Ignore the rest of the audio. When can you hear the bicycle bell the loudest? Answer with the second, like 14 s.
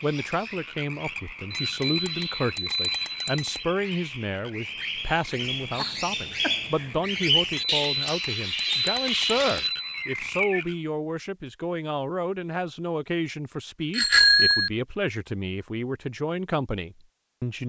14 s.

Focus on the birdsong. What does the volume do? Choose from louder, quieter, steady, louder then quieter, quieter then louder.
louder.